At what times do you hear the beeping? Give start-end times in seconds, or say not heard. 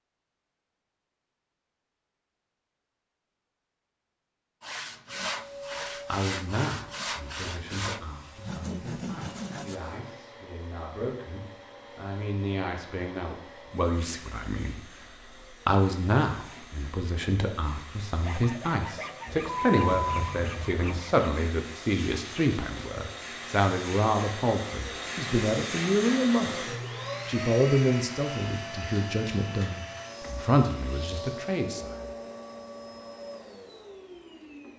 19.2-20.9.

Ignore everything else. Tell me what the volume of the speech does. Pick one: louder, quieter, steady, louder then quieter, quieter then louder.
louder.